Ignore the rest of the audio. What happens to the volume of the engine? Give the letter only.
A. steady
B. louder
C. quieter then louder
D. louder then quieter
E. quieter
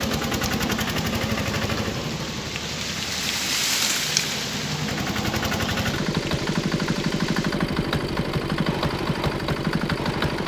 C.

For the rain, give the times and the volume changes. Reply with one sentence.
The rain can be heard from 0.0 to 10.4 s, getting louder then quieter.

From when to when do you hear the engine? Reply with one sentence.
The engine can be heard from 0.0 to 10.4 s.